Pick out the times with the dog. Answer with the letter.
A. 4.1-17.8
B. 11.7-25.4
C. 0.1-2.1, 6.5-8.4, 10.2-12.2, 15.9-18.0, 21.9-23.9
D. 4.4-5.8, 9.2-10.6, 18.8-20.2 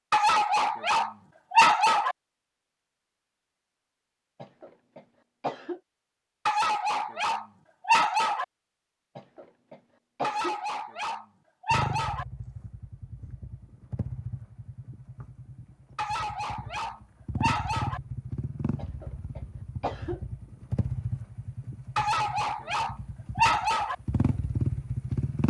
C.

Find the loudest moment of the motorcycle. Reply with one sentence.
The volume of the motorcycle peaks at 25 seconds.